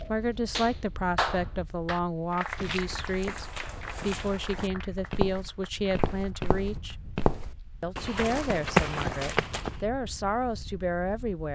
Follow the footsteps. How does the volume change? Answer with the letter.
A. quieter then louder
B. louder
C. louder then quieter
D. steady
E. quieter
B.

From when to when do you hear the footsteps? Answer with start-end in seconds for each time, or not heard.
2.4-9.8.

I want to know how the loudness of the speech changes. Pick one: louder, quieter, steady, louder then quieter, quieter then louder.
steady.